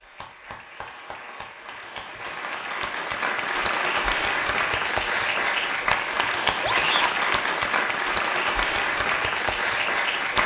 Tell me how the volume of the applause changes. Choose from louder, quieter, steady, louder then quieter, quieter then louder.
louder.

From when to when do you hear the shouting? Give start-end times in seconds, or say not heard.
6.6-7.2.